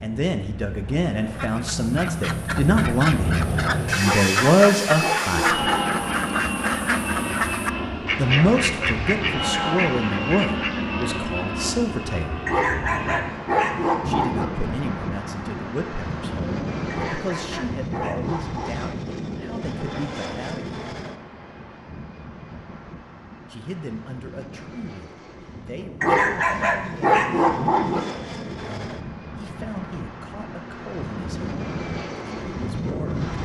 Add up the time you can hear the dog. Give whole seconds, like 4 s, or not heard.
8 s.